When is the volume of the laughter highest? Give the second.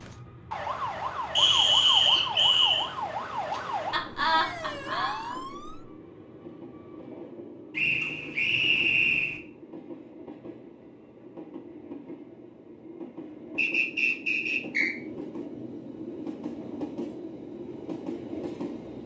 4 s.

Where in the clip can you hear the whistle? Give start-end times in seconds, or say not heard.
1.4-2.9, 7.8-9.4, 13.6-14.9.